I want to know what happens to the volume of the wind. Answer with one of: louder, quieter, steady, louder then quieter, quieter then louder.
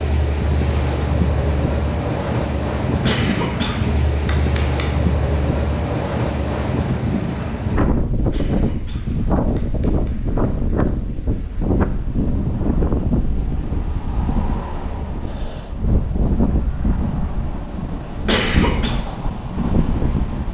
steady.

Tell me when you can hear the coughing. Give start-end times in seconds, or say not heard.
3.0-4.8, 8.3-10.1, 18.2-18.9.